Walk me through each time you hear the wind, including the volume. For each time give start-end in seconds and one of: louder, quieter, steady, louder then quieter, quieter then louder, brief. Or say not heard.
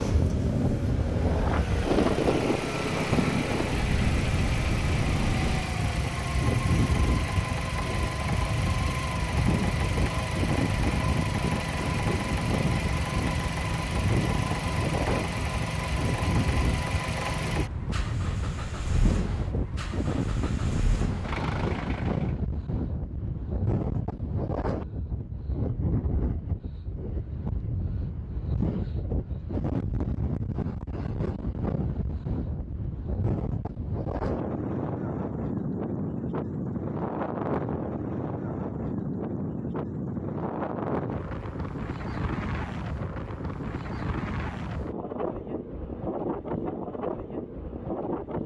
0.0-48.4 steady.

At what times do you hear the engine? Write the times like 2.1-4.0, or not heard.
0.0-22.4.